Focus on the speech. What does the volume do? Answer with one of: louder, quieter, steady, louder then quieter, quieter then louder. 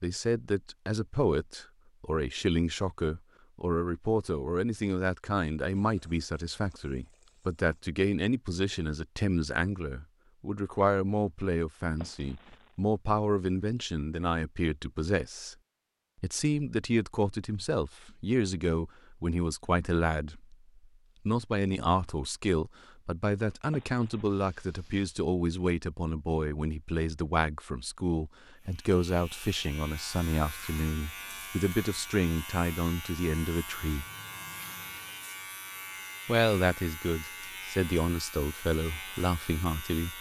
steady.